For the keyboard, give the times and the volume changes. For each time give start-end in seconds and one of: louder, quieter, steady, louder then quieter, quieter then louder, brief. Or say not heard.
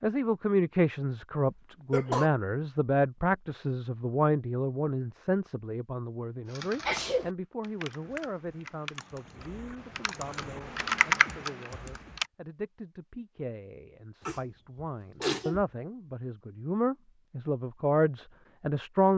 6.5-12.3 louder.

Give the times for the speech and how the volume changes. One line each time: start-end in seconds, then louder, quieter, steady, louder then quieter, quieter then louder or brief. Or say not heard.
0.0-19.1 quieter then louder.